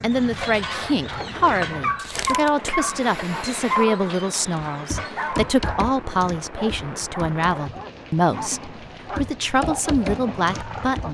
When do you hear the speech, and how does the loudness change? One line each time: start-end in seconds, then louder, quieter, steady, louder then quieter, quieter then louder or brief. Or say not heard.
0.0-11.0 steady.